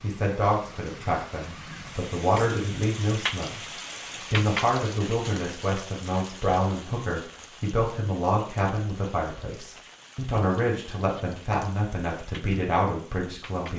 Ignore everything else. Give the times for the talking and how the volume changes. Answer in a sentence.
The talking can be heard from 0.0 to 13.7 s, at a steady volume.